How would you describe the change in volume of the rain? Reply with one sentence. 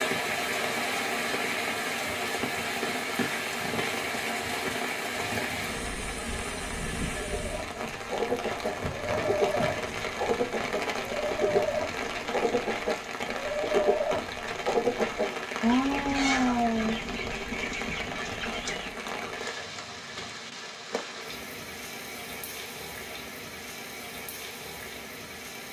The loudness of the rain goes down.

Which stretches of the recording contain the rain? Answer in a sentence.
You can hear the rain from 0.0 to 25.6 s.